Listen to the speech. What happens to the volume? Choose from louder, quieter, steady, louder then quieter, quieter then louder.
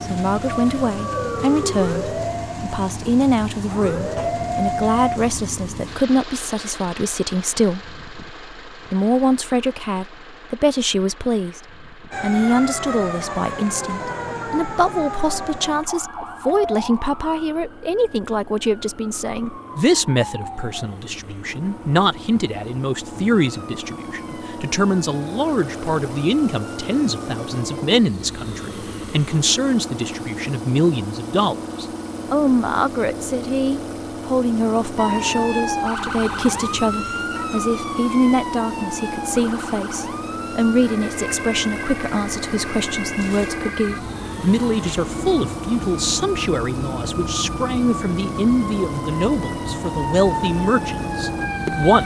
steady.